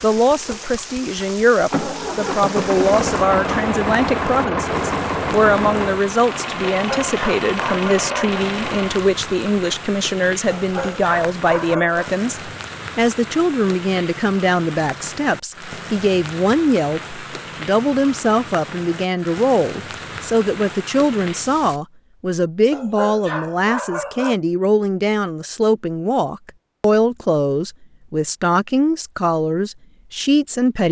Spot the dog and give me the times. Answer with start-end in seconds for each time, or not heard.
6.8-8.4, 10.5-12.0, 22.7-24.4.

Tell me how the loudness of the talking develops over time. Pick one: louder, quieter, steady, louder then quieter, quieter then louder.
steady.